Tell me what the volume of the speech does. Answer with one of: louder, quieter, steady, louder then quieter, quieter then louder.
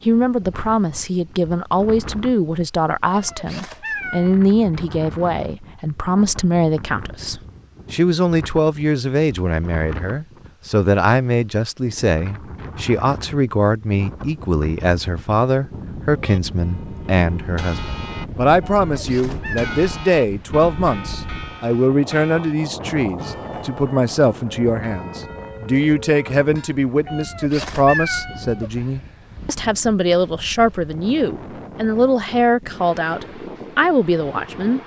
steady.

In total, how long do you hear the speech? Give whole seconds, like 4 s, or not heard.
35 s.